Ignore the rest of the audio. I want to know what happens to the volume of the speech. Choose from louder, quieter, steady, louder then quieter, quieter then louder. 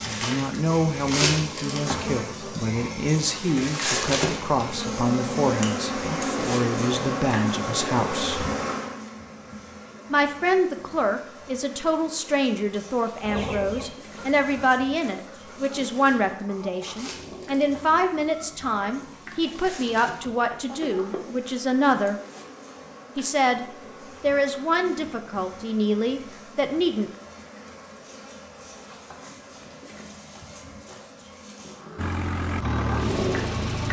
steady.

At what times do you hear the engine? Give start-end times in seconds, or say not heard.
31.9-33.8.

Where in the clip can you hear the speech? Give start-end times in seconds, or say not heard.
0.0-8.4, 10.1-22.2, 23.1-27.1.